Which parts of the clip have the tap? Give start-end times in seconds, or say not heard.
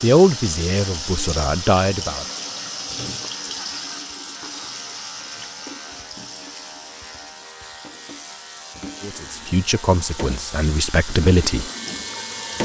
0.0-12.6.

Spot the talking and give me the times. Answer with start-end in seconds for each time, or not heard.
0.0-2.2, 9.0-11.7.